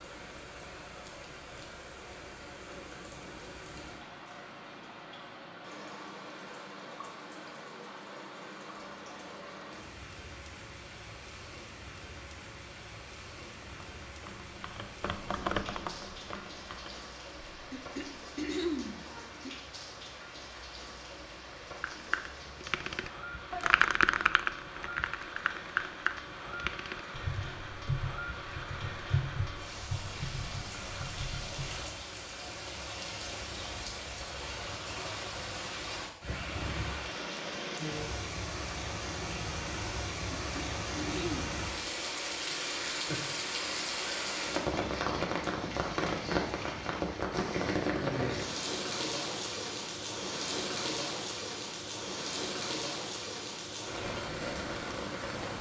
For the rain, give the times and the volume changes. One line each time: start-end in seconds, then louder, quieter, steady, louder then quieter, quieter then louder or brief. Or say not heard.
0.0-55.5 louder.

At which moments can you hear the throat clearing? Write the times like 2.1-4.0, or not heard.
17.7-19.6, 40.4-41.5.